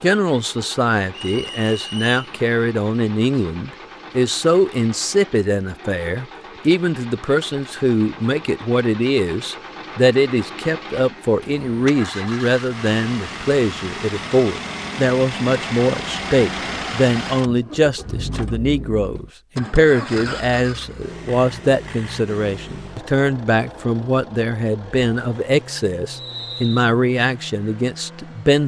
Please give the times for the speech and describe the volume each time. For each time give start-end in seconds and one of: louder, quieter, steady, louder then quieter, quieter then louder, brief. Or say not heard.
0.0-28.6 steady.